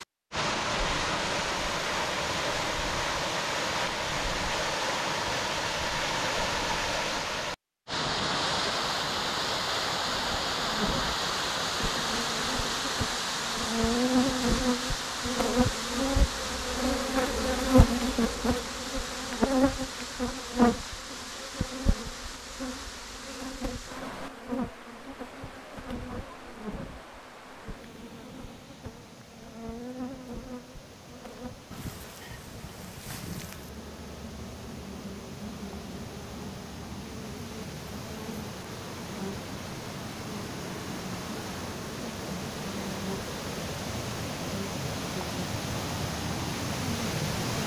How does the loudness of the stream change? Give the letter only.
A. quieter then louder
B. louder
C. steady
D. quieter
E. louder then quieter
A.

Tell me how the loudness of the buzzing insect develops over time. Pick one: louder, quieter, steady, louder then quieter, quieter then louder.
quieter.